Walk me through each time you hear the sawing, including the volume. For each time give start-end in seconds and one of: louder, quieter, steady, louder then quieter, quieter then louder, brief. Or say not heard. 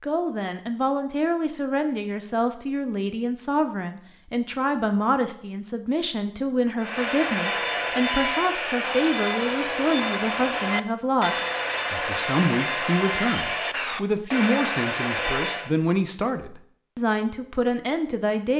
6.8-15.7 steady.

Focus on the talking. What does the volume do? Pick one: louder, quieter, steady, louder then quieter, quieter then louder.
steady.